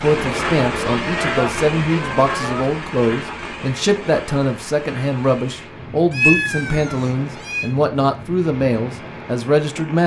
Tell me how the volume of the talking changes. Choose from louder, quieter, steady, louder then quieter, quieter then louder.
steady.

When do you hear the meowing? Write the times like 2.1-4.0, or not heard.
0.8-2.6, 6.1-7.7.